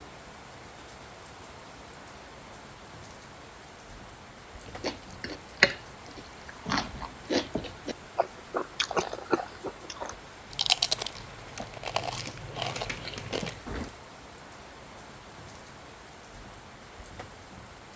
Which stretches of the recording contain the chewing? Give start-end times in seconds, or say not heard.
4.7-13.9.